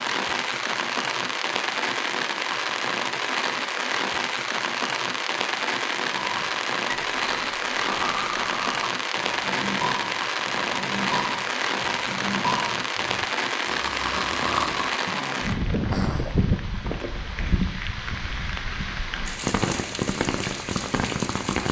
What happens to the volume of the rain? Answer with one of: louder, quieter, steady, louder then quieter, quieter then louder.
steady.